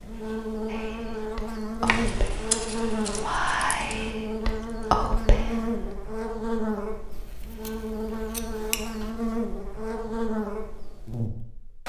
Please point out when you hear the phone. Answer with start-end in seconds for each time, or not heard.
not heard.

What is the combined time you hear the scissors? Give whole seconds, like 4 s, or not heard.
4 s.